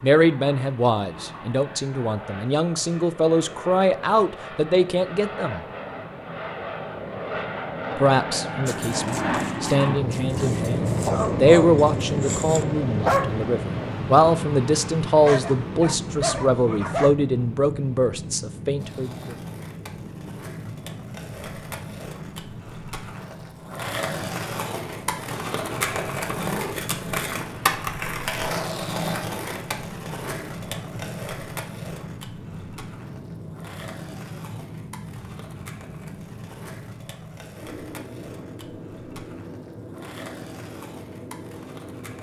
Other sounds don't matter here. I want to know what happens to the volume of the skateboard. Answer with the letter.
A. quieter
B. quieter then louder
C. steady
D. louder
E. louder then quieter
E.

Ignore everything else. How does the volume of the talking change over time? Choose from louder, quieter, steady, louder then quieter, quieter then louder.
steady.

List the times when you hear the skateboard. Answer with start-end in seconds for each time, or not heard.
18.8-42.1.